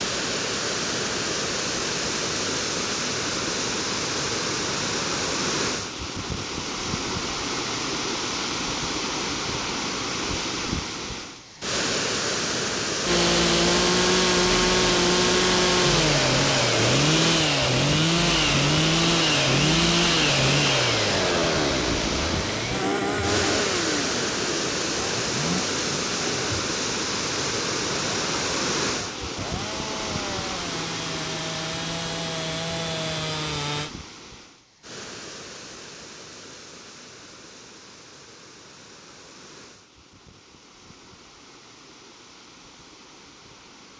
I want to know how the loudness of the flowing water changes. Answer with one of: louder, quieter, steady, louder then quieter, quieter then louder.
quieter.